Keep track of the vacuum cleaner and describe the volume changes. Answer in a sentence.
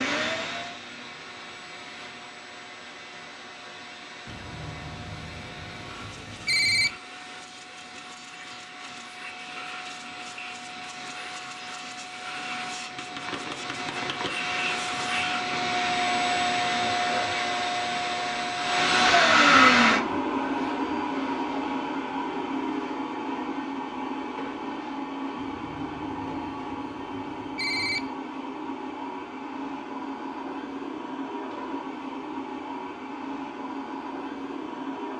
The volume of the vacuum cleaner goes up, then down.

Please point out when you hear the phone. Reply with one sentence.
The phone can be heard from 4.2 to 7.0 s and from 25.4 to 28.1 s.